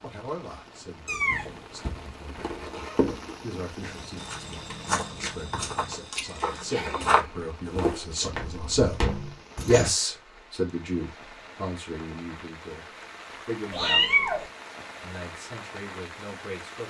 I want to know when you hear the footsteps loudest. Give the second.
7 s.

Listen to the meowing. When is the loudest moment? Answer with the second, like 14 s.
14 s.